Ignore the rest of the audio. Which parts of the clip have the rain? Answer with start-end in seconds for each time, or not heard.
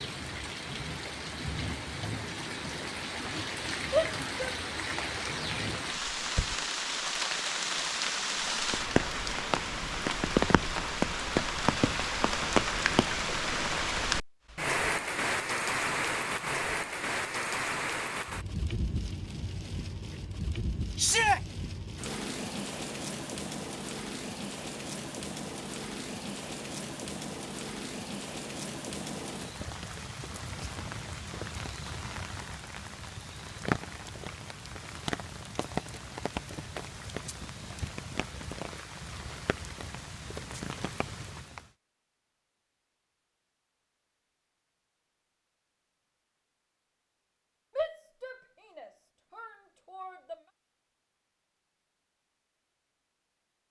0.0-41.7.